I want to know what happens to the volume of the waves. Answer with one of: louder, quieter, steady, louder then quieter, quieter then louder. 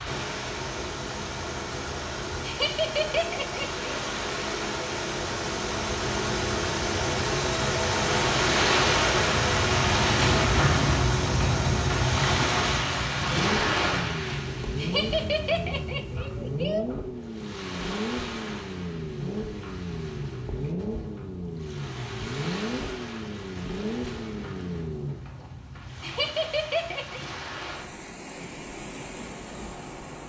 louder then quieter.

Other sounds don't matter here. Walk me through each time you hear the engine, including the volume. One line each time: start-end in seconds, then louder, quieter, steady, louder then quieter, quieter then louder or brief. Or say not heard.
0.0-25.5 louder then quieter.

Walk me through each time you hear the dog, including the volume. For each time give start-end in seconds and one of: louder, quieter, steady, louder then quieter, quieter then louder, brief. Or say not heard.
not heard.